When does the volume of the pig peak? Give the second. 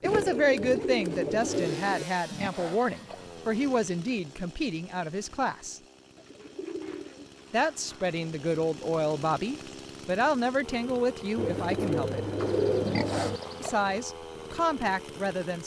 13 s.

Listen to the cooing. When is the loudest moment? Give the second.
13 s.